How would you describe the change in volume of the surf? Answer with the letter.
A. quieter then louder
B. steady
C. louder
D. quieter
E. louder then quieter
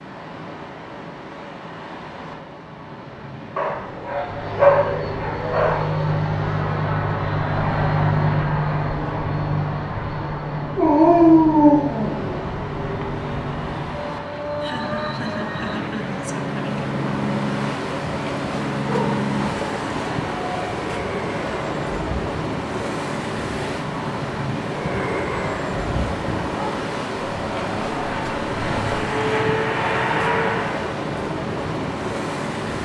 C.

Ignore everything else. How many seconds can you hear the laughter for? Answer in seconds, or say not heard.
2 s.